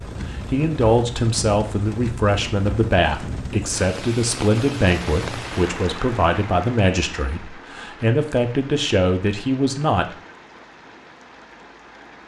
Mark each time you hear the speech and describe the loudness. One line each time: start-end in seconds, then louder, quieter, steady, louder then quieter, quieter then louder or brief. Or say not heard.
0.3-10.2 steady.